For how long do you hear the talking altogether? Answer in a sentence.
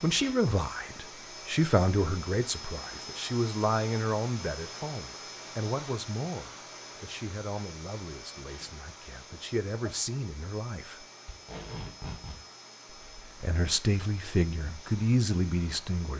The talking can be heard for 14 seconds in total.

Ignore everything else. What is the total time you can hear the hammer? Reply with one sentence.
The hammer can't be heard in this clip.